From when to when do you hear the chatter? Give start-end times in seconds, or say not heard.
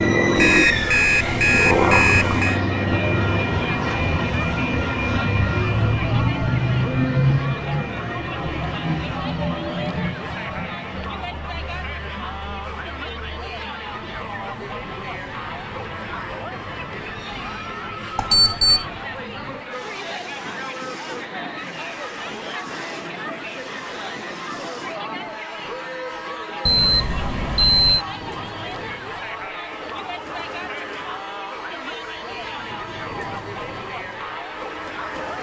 0.0-35.3.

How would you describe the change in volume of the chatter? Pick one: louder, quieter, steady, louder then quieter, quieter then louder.
steady.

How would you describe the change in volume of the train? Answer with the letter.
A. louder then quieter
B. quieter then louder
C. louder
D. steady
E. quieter
E.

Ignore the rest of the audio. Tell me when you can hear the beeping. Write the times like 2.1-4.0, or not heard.
0.3-2.6, 18.1-18.9, 26.6-28.1.